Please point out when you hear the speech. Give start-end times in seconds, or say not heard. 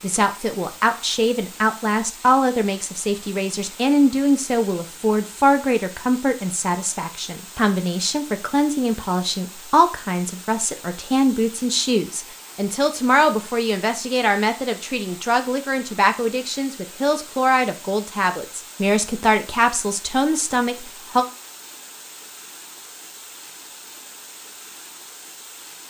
0.0-21.2.